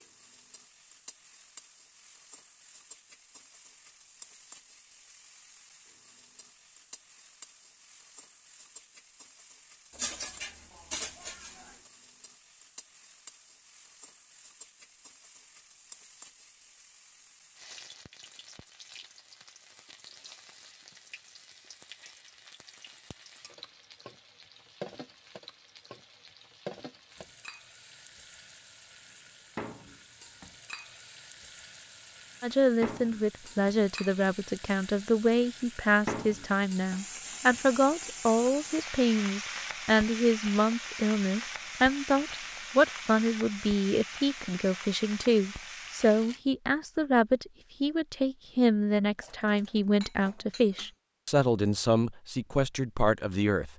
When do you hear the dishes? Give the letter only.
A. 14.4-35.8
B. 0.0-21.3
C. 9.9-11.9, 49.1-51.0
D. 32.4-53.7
C.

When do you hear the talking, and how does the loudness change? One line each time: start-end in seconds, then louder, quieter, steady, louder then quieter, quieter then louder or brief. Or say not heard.
32.4-53.7 steady.